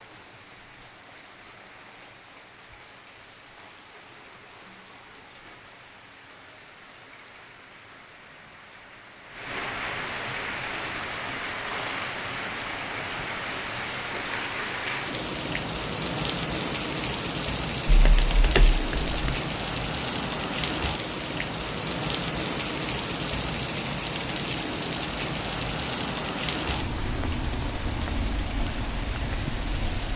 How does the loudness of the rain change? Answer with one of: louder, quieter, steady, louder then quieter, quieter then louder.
louder.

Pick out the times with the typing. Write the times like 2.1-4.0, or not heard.
17.9-19.4.